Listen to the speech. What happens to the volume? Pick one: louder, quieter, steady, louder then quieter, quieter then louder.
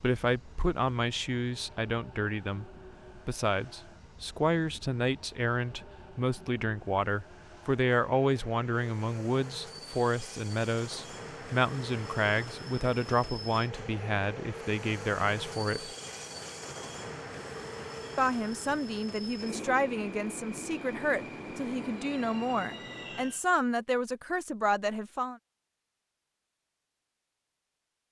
steady.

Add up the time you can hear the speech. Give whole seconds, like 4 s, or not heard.
23 s.